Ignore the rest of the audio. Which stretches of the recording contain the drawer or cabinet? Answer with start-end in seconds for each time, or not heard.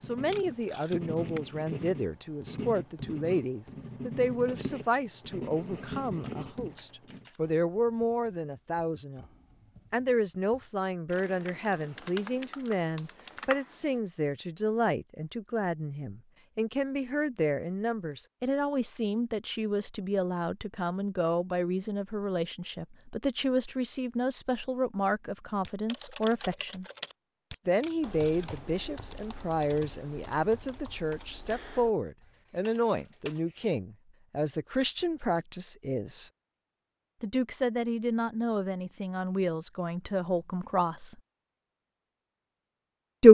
not heard.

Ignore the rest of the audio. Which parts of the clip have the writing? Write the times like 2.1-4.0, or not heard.
0.0-7.2.